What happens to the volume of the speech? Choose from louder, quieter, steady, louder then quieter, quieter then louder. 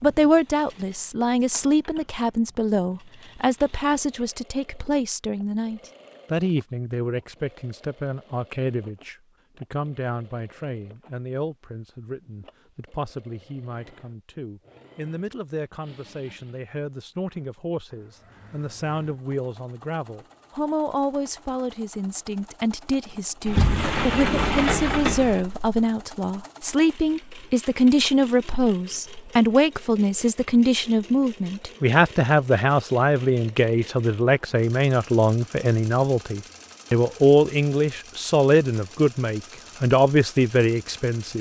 quieter then louder.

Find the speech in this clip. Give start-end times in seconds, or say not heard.
0.0-41.3.